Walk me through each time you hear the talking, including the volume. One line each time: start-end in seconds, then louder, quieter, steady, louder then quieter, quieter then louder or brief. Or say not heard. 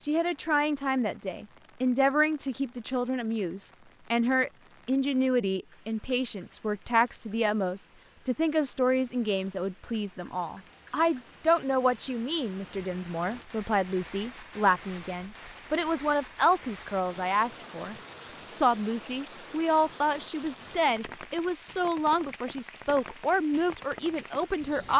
0.0-24.9 steady.